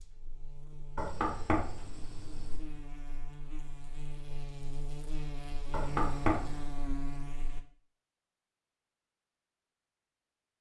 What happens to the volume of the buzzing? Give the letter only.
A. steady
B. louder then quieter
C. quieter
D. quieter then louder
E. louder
E.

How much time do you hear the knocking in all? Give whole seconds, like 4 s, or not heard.
3 s.